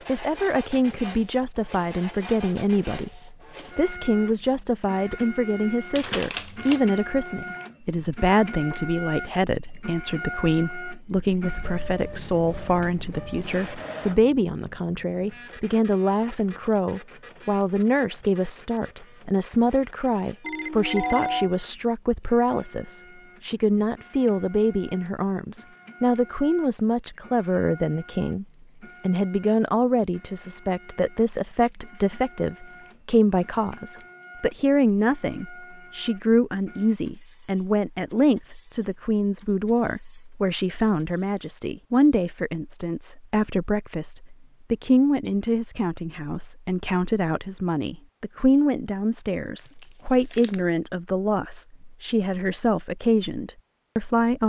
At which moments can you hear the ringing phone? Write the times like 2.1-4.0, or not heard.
20.4-21.5.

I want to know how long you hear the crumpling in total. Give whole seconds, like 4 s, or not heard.
2 s.